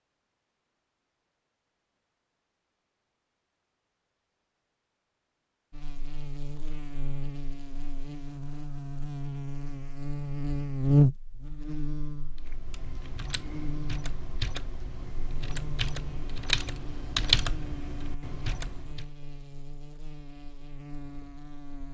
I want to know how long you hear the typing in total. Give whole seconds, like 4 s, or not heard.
7 s.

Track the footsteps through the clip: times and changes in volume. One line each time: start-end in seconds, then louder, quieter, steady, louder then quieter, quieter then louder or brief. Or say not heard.
not heard.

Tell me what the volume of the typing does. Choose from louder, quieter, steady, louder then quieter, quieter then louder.
louder then quieter.